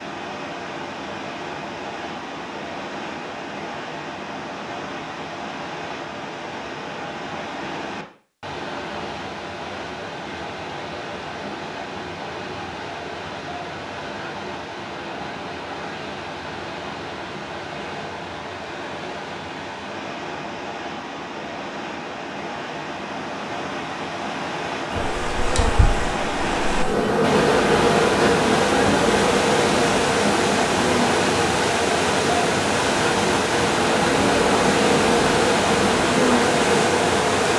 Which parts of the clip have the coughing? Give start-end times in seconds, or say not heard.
not heard.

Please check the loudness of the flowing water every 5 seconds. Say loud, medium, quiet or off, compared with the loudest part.
medium, medium, medium, medium, medium, loud, loud, loud.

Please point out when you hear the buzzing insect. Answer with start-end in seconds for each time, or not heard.
24.9-37.5.